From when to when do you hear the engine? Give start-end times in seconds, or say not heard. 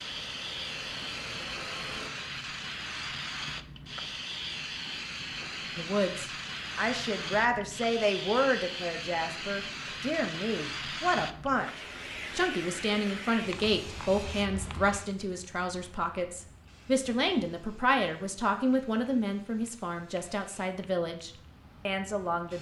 0.0-2.1.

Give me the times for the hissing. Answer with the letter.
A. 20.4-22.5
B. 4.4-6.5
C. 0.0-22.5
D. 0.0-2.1
C.